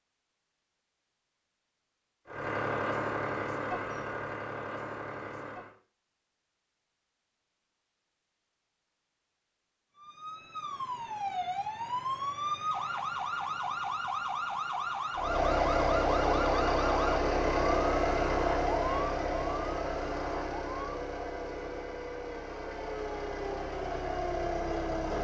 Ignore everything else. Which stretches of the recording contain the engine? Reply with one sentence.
You can hear the engine from 2.2 to 5.8 s and from 15.2 to 25.2 s.